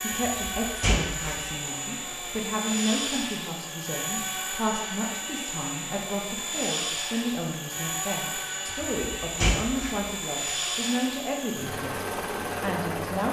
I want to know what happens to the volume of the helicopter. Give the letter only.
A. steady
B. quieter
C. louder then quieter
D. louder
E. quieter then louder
A.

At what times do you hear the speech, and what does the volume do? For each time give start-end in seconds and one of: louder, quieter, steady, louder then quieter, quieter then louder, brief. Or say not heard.
0.0-13.2 steady.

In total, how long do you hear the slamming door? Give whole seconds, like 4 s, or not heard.
3 s.